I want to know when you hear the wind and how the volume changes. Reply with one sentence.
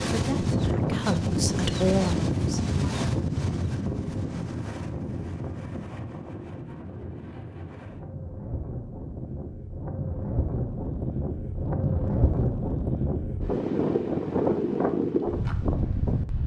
You can hear the wind from 0.0 to 16.4 s, getting quieter then louder.